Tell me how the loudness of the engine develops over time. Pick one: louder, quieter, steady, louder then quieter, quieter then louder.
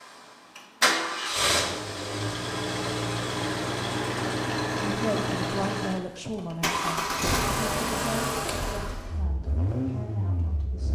quieter.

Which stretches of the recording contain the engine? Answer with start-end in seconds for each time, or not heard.
0.0-10.9.